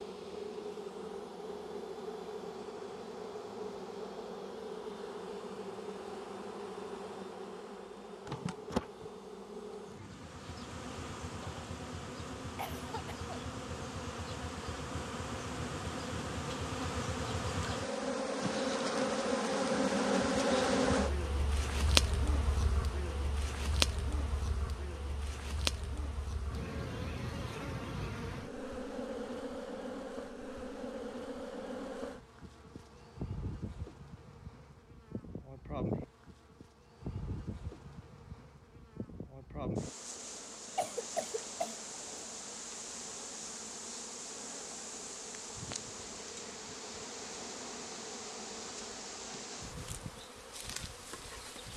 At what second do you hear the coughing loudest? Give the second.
41 s.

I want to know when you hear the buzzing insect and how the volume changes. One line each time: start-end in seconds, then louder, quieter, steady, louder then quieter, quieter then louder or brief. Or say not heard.
0.0-51.7 louder then quieter.